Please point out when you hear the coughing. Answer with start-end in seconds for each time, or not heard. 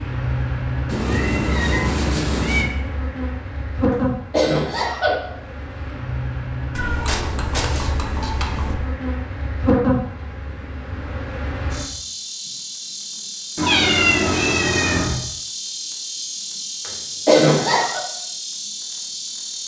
3.9-5.2, 16.9-18.0.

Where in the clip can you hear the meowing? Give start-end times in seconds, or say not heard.
0.8-2.7, 6.8-8.8, 13.6-15.2.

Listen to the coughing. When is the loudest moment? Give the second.
17 s.